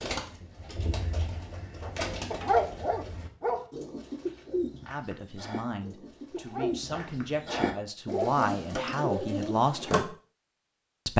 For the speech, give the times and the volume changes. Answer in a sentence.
The speech can be heard from 4.9 to 10.1 s, getting louder.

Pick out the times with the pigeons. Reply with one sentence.
The pigeons can be heard from 0.0 to 10.1 s.